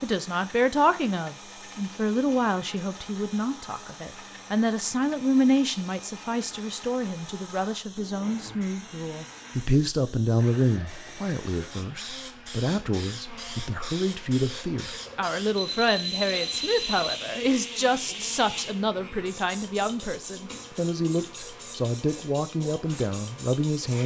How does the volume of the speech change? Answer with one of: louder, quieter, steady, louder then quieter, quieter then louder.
steady.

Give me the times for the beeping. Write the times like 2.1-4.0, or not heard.
15.6-17.1.